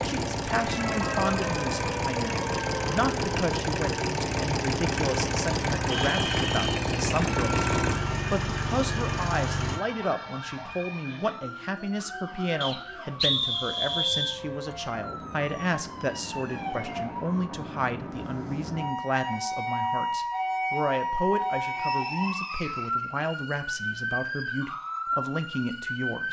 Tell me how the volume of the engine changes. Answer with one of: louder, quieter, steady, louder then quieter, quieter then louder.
steady.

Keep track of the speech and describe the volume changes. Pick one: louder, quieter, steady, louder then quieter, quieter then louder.
steady.